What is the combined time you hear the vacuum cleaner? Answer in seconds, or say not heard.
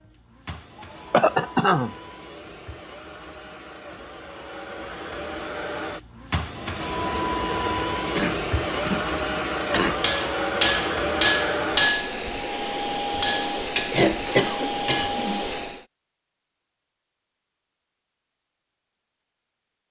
16 s.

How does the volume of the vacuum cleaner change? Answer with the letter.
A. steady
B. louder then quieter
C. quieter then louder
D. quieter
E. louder
E.